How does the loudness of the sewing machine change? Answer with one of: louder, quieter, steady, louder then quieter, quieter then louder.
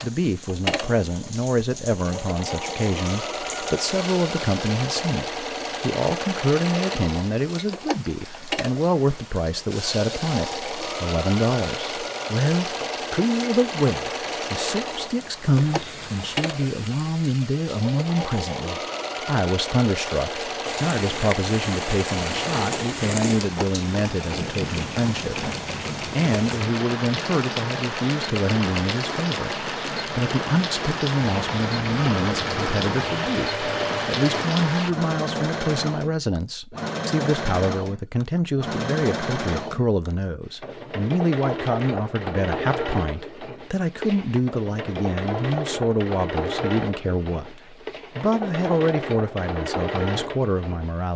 steady.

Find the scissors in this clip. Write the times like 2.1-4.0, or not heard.
not heard.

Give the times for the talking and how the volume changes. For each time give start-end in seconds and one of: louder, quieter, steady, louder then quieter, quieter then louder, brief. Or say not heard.
0.0-51.1 steady.